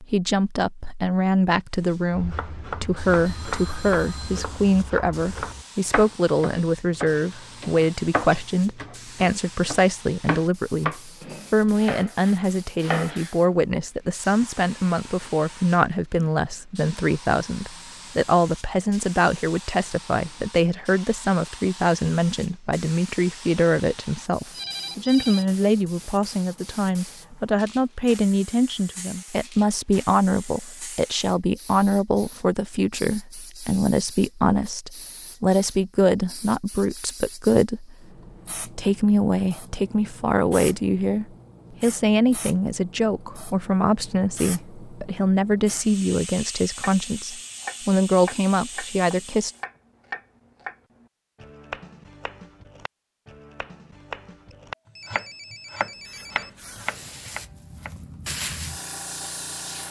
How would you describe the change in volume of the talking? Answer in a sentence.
The loudness of the talking stays about the same.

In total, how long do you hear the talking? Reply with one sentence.
The talking can be heard for 49 seconds in total.